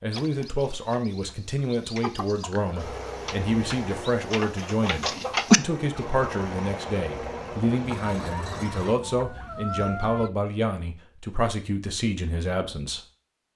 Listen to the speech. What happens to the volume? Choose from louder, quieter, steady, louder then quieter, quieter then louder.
steady.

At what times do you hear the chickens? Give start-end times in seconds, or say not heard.
0.1-10.3.